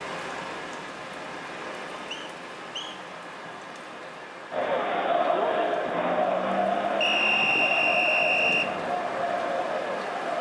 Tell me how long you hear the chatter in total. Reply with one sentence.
The chatter can be heard for 6 seconds in total.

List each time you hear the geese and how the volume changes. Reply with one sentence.
The geese can't be heard in this clip.